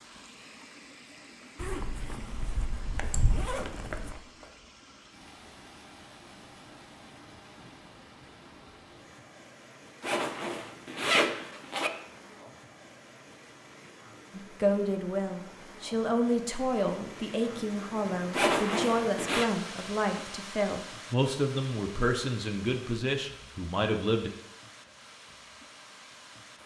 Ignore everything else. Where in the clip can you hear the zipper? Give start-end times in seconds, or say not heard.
1.6-4.2, 10.0-11.9, 18.3-19.4.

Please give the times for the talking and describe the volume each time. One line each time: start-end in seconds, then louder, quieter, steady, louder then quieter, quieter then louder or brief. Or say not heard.
14.3-24.3 steady.